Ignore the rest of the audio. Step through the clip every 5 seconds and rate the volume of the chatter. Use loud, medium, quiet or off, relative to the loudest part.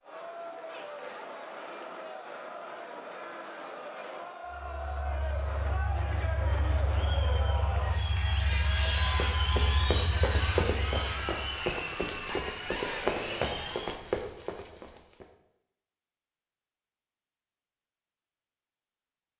medium, loud, loud, off.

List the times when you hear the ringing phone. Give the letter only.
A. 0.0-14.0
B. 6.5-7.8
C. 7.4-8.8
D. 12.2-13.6
D.